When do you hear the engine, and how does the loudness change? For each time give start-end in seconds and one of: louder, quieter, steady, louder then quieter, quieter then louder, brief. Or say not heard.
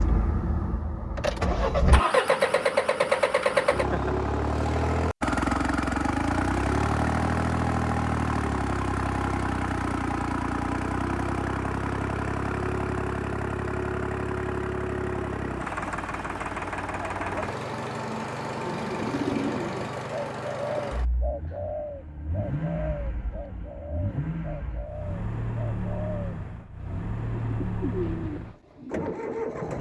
0.0-29.7 quieter.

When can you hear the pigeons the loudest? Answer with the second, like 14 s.
19 s.